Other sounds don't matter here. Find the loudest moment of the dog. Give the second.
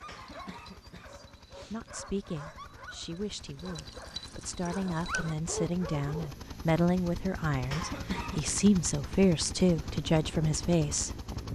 5 s.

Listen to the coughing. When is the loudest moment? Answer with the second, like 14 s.
8 s.